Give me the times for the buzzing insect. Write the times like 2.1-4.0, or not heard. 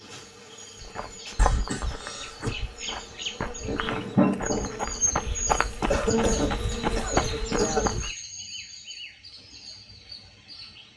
0.0-8.1.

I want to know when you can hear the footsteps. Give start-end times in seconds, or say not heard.
0.8-8.2.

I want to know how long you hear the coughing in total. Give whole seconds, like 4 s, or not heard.
3 s.